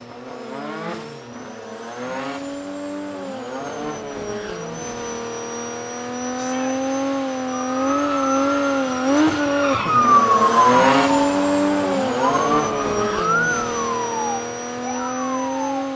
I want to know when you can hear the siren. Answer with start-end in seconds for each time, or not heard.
7.7-15.7.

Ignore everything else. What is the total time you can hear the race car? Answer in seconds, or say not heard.
16 s.